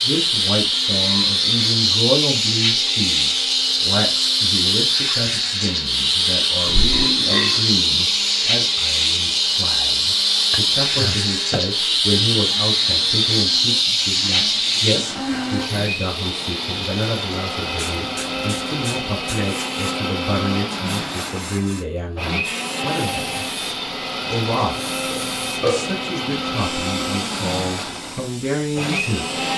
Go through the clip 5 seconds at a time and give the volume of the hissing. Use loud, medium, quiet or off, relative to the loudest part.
loud, loud, loud, quiet, quiet, quiet.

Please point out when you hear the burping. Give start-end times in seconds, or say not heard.
6.7-7.7, 10.5-11.7, 25.1-25.9.